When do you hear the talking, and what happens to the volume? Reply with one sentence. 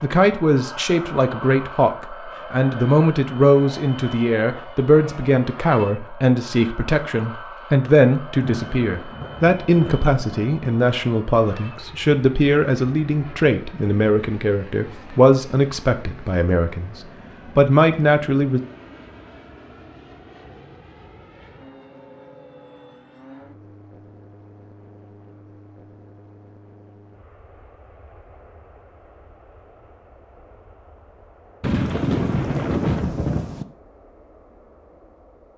You can hear the talking from 0.0 to 16.9 s, at a steady volume; and briefly from 17.6 to 18.6 s.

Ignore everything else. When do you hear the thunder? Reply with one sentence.
You can hear the thunder from 8.4 to 10.4 s and from 31.6 to 33.6 s.